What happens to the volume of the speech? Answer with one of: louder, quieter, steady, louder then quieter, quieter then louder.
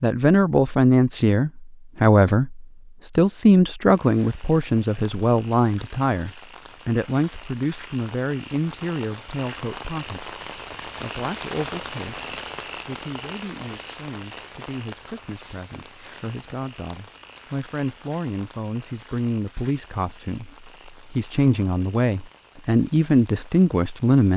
quieter then louder.